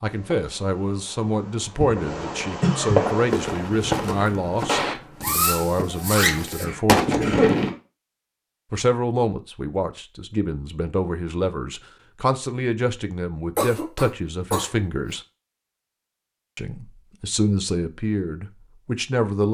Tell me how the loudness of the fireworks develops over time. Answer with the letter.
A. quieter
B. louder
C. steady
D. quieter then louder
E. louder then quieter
B.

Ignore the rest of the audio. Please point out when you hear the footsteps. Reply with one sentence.
You can hear the footsteps from 3.1 to 6.8 s.